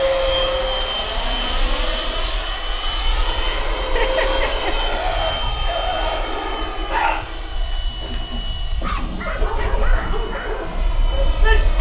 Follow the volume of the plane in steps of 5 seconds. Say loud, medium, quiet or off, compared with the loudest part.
loud, medium, medium.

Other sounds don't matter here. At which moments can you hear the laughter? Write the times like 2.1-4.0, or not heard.
3.8-4.9.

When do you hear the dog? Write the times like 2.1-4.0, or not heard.
4.8-11.7.